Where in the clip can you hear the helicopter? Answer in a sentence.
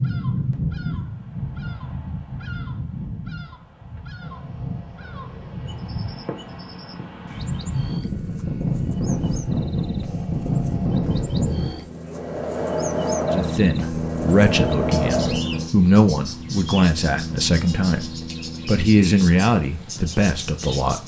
You can hear the helicopter from 4.2 to 21.0 s.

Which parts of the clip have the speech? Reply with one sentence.
The speech can be heard from 13.2 to 21.0 s.